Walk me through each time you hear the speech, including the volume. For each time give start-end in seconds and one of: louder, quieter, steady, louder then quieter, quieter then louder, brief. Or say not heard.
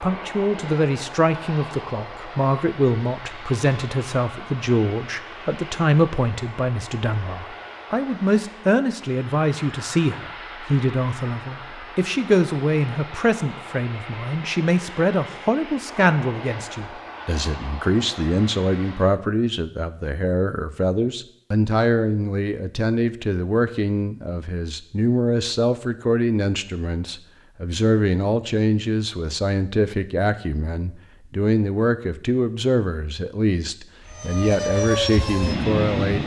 0.0-36.2 steady.